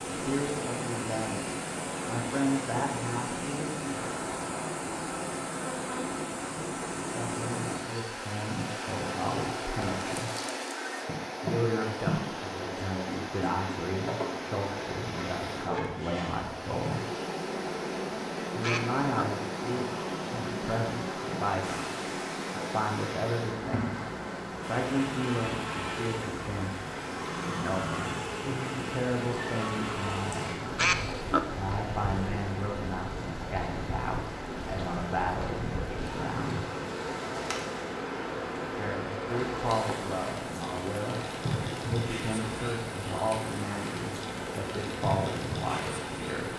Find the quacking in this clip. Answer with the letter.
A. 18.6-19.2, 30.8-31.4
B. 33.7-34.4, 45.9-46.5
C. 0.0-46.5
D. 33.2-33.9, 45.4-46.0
A.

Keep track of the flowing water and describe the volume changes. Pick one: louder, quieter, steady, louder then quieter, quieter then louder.
steady.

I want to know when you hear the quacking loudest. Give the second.
31 s.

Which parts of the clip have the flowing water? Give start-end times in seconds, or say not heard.
0.0-46.5.